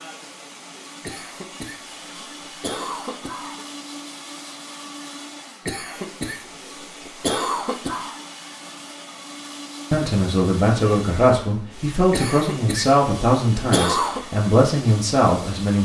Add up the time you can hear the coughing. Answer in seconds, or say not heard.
7 s.